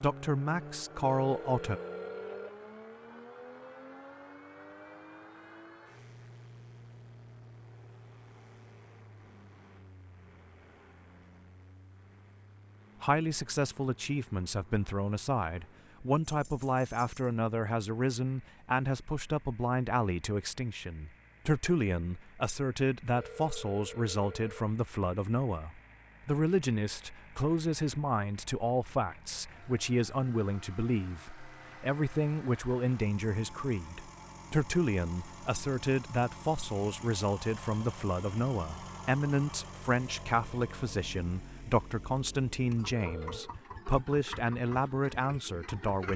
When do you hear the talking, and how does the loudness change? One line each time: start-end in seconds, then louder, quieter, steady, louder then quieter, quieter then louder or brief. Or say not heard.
0.0-1.8 brief
13.0-46.1 steady.